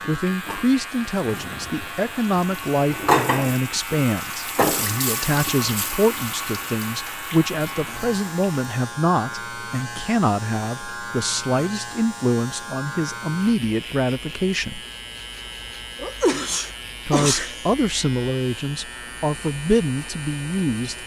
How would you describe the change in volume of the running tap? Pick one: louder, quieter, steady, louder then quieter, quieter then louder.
louder then quieter.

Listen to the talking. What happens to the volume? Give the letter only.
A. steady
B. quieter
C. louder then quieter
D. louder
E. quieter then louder
A.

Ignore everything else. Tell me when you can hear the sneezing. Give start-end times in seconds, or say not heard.
15.9-17.6.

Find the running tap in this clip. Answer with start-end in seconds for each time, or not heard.
0.2-8.6.